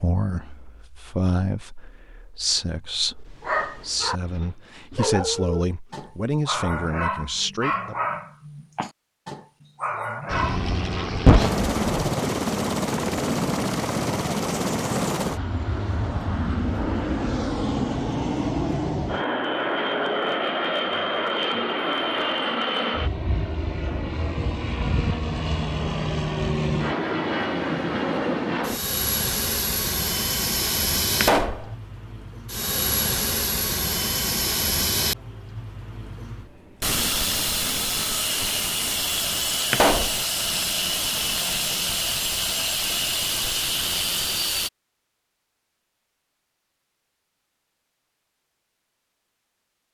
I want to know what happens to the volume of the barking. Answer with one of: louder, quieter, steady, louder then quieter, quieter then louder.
steady.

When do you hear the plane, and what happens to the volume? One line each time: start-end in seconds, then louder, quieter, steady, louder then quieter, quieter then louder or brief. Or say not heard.
10.2-44.7 steady.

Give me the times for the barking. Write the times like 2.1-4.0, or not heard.
3.4-11.1.